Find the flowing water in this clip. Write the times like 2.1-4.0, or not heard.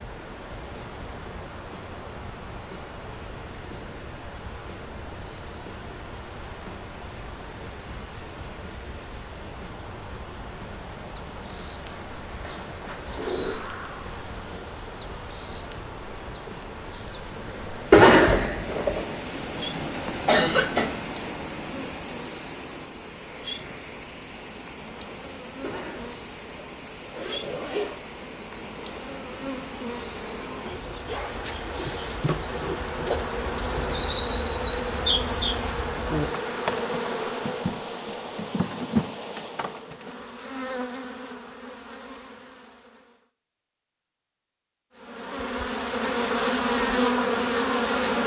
0.0-40.0.